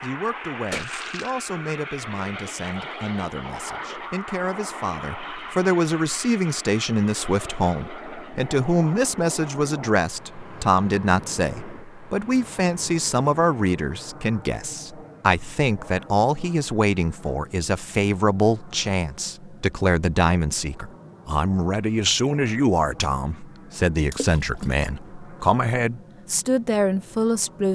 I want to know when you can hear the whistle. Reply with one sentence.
You can't hear the whistle here.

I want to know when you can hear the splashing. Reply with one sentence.
The splashing can be heard from 0.7 to 1.3 s and from 24.1 to 24.8 s.